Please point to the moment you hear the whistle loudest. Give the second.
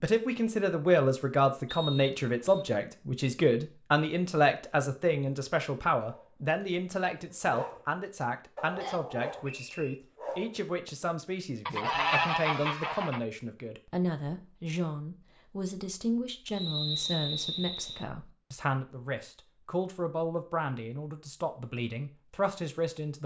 17 s.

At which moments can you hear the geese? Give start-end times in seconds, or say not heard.
11.7-13.2.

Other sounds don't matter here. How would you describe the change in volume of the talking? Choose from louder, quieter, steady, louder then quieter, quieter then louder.
quieter.